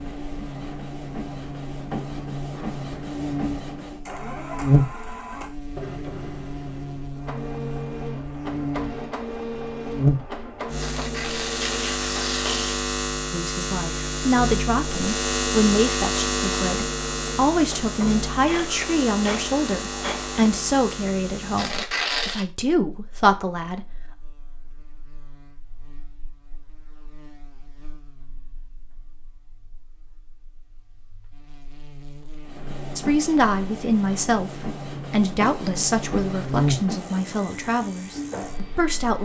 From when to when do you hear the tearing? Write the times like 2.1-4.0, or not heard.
10.8-12.8, 21.6-22.4.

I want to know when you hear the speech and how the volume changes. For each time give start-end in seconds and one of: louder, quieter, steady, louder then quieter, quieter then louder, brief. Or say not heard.
13.3-23.9 steady
33.0-39.2 quieter.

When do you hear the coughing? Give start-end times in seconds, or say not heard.
not heard.